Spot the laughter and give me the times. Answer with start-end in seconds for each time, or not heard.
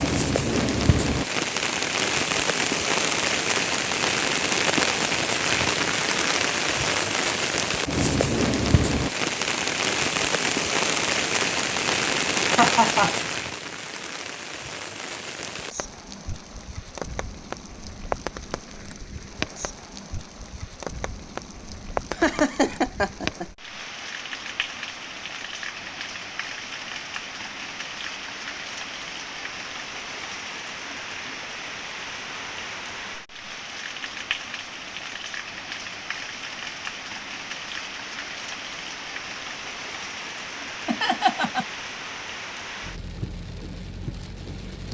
12.4-13.2, 22.1-23.4, 40.9-41.6.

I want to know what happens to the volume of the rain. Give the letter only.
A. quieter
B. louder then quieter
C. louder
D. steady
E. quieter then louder
A.